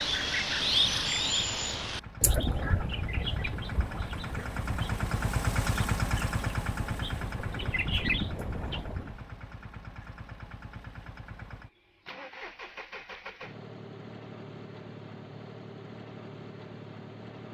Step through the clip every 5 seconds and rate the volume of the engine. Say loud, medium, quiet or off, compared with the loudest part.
medium, loud, medium, medium.